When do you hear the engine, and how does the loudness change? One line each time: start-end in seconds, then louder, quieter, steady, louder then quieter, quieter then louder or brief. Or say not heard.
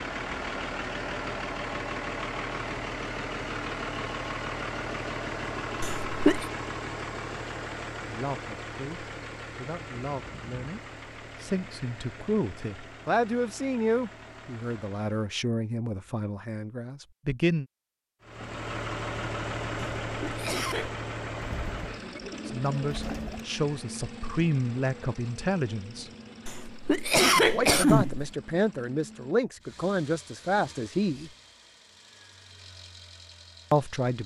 0.0-15.3 quieter
18.2-34.2 quieter.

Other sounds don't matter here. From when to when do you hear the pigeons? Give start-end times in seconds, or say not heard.
21.4-23.4.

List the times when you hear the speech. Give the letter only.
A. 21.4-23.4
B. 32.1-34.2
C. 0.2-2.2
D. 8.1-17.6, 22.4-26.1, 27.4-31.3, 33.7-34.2
D.